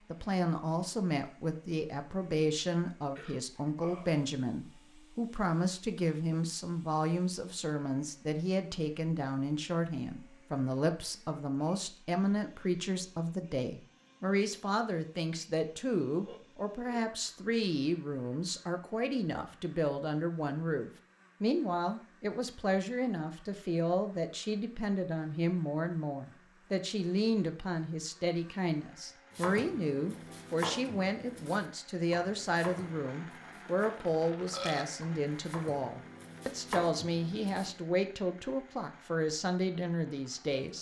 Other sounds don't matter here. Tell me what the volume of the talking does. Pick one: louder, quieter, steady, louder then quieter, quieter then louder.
steady.